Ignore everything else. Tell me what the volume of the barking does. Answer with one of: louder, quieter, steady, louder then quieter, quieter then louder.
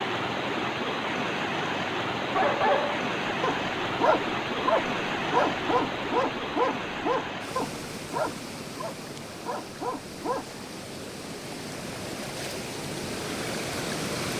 quieter.